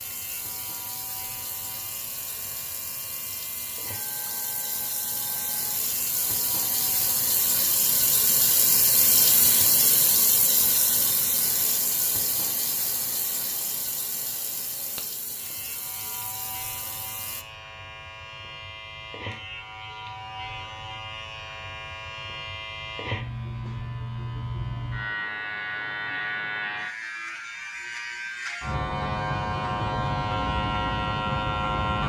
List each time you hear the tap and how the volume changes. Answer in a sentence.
The tap can be heard from 0.0 to 17.4 s, getting louder then quieter.